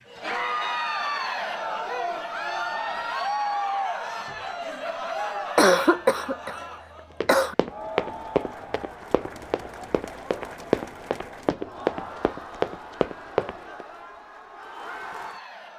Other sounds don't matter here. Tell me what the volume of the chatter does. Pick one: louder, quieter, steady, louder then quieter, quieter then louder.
quieter.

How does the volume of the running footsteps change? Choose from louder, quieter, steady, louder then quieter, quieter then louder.
quieter then louder.